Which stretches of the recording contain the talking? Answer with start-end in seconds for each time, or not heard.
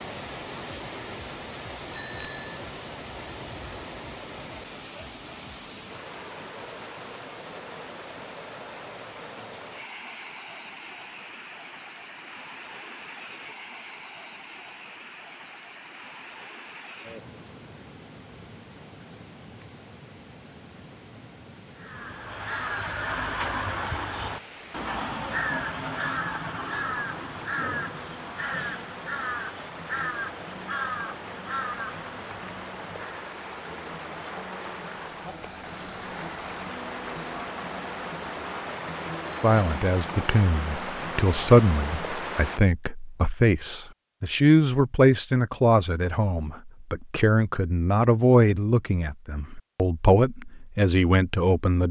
39.4-51.8.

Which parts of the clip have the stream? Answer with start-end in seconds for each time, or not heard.
0.0-42.6.